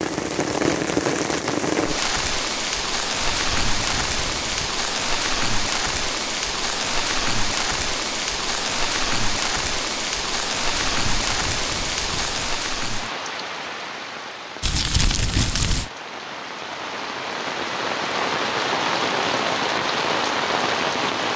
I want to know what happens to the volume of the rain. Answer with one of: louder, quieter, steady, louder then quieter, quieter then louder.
quieter then louder.